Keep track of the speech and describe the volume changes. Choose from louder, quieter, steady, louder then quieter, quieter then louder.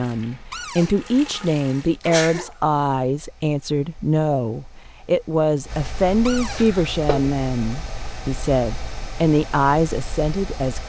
steady.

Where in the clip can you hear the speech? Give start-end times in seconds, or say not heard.
0.0-10.8.